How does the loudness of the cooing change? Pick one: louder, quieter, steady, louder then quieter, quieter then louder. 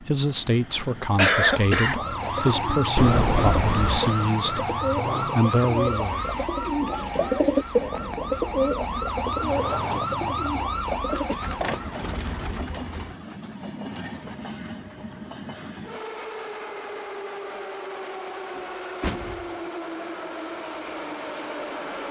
louder then quieter.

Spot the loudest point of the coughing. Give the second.
1 s.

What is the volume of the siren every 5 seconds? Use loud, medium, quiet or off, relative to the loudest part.
loud, loud, loud, off, off.